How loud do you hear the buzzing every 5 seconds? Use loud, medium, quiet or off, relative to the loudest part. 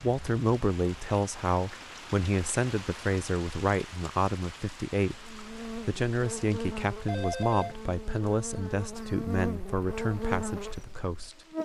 off, loud, loud.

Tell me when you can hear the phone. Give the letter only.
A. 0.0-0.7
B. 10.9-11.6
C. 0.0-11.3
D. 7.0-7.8
D.